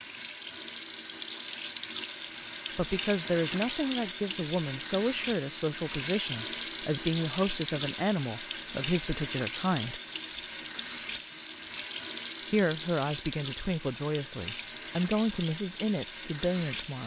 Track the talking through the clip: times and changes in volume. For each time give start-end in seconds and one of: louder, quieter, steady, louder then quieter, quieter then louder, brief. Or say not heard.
2.8-10.0 steady
12.5-17.0 steady.